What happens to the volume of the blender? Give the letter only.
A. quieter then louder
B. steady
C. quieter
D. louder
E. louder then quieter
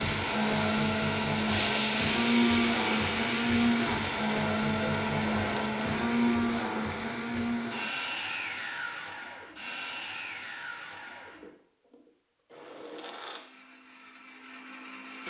C.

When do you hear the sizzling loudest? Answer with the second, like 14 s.
2 s.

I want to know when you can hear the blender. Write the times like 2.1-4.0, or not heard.
0.0-15.2.